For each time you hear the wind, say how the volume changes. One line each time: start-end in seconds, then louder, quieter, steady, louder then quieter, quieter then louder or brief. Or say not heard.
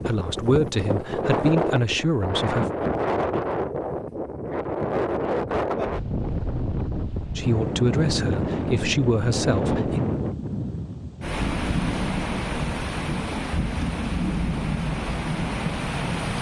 0.0-16.3 steady.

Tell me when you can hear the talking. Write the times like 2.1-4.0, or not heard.
0.0-2.6, 7.3-10.1.